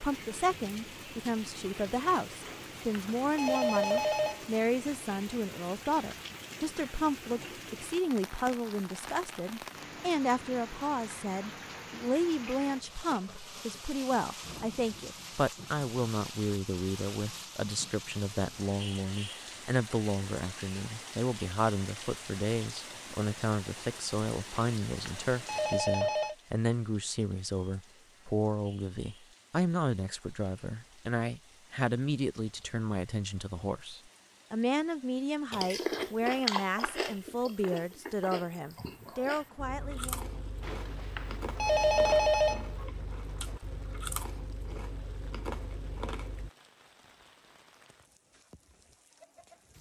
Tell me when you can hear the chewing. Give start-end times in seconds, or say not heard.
35.5-46.5.